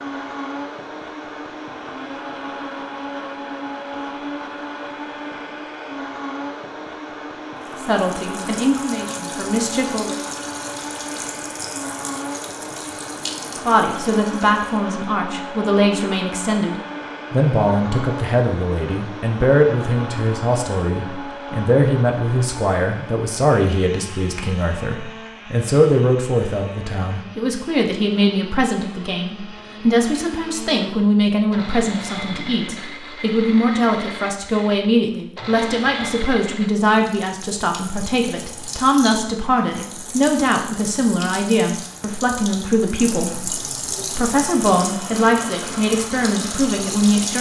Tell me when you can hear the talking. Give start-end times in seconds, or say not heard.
7.8-10.2, 13.7-47.3.